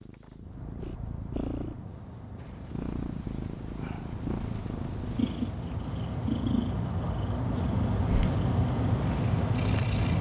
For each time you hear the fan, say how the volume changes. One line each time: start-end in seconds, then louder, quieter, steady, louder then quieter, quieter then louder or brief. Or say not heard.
0.0-10.1 louder.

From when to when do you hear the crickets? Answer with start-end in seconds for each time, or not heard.
2.4-10.1.